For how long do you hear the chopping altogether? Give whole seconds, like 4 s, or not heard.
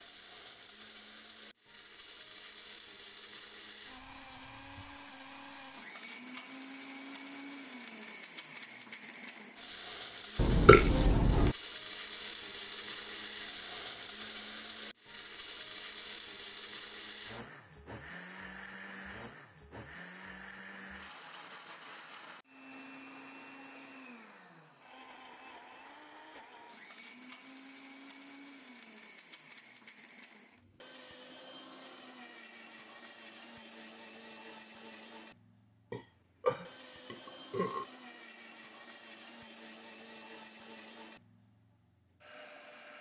not heard.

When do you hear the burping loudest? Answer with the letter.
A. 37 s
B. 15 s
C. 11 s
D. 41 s
C.